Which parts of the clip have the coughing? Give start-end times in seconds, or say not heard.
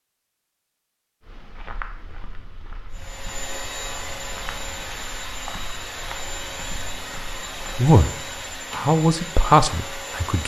not heard.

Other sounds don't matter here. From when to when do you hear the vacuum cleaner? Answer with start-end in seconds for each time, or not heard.
2.9-10.4.